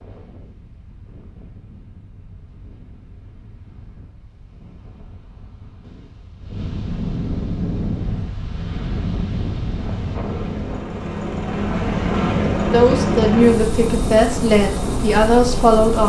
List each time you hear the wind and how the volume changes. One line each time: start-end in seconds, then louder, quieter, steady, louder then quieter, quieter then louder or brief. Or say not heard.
0.0-10.8 louder.